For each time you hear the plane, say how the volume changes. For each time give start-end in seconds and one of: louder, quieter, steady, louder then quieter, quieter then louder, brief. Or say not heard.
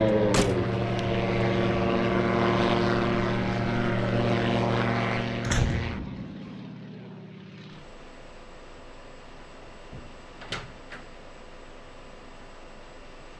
0.0-13.3 quieter.